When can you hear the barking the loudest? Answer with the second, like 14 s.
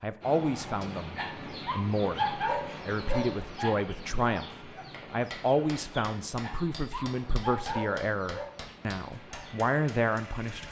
2 s.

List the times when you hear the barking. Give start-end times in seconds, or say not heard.
0.8-3.8, 6.2-8.5.